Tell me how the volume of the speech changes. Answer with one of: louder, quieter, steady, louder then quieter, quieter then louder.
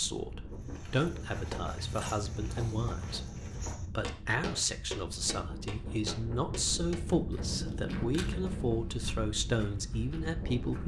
steady.